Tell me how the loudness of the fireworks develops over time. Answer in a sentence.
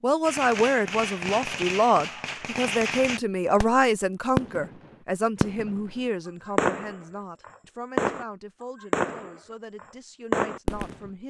The loudness of the fireworks goes up.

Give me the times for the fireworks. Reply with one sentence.
You can hear the fireworks from 0.2 to 11.1 s.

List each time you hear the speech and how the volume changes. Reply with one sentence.
You can hear the speech from 0.0 to 11.2 s, getting quieter.